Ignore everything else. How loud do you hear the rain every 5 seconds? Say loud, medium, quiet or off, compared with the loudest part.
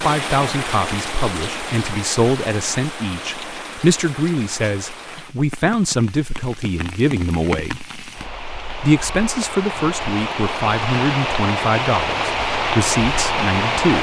medium, medium, loud.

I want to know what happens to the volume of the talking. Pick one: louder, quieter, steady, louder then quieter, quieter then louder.
steady.